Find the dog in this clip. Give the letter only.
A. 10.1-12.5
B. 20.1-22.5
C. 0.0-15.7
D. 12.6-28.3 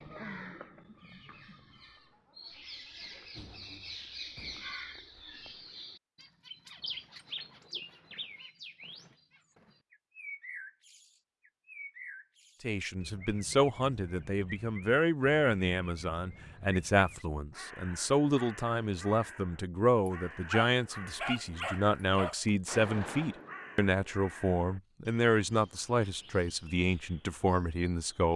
B.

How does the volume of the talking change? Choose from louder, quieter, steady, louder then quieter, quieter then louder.
steady.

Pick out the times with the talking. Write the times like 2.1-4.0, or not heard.
12.6-28.3.